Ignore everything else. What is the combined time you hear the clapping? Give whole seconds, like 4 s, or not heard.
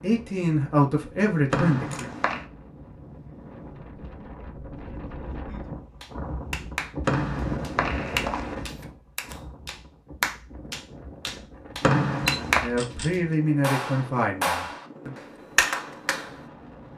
8 s.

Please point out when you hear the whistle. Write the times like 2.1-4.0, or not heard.
1.5-2.5, 7.0-8.7, 11.8-12.7.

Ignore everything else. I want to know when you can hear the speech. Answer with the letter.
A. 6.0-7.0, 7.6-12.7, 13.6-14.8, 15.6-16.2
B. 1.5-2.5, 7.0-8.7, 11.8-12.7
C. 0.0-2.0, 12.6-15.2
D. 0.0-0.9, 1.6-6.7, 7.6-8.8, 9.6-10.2
C.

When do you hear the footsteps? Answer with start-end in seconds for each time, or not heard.
not heard.